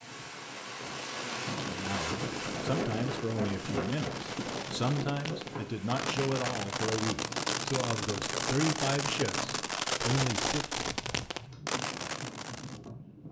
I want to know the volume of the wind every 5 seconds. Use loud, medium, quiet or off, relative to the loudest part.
loud, medium, medium.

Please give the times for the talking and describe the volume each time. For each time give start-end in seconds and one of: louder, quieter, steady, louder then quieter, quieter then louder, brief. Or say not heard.
1.6-10.8 steady.